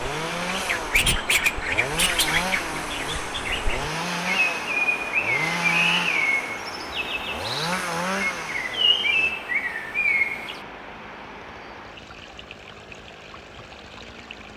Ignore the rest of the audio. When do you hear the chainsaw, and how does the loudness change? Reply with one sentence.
The chainsaw can be heard from 0.0 to 14.5 s, getting quieter.